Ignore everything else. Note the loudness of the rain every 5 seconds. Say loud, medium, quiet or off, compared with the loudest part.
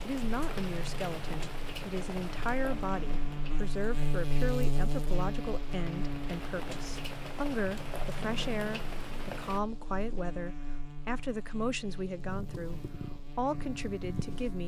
loud, loud, off.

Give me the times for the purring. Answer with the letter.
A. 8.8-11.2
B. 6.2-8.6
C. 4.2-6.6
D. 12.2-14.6
D.